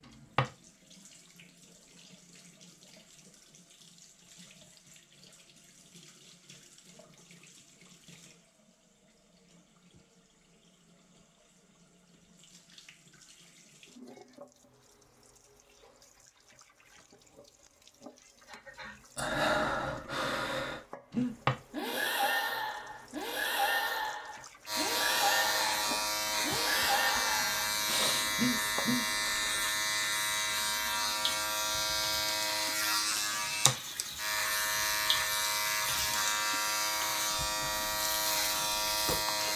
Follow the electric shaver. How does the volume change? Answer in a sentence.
The loudness of the electric shaver stays about the same.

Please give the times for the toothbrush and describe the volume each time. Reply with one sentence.
You can't hear the toothbrush here.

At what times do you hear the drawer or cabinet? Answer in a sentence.
The drawer or cabinet can be heard from 0.1 to 0.5 s, from 21.2 to 21.6 s and from 33.3 to 33.8 s.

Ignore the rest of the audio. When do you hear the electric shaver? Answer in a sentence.
The electric shaver can be heard from 24.6 to 39.5 s.